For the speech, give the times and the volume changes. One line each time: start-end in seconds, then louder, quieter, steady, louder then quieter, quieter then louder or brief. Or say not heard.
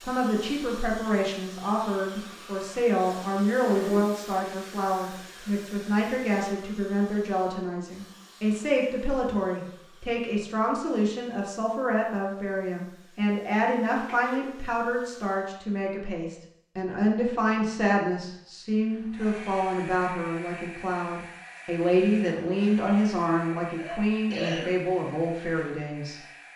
0.0-26.2 steady.